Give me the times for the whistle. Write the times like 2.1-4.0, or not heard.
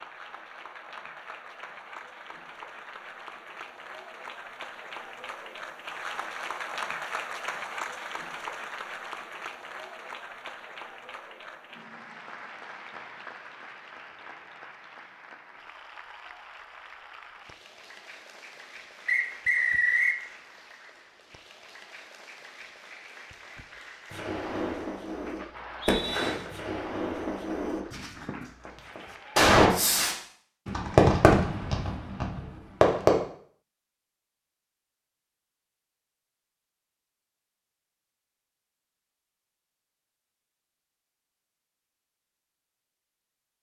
19.1-20.2, 25.5-26.3.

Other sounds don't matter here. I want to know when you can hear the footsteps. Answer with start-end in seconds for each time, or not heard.
not heard.